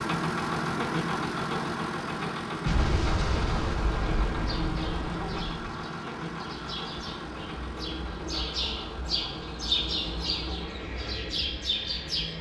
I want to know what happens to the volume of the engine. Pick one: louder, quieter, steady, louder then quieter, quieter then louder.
quieter.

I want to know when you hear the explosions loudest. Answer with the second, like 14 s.
3 s.